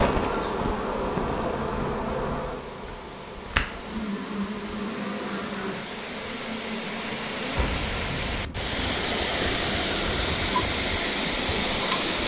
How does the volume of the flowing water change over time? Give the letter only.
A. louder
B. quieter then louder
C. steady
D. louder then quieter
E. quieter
A.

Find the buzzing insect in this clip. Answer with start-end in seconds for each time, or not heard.
0.0-12.2.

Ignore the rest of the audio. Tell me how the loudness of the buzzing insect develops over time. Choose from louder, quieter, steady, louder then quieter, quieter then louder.
quieter.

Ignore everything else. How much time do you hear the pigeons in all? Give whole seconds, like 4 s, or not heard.
not heard.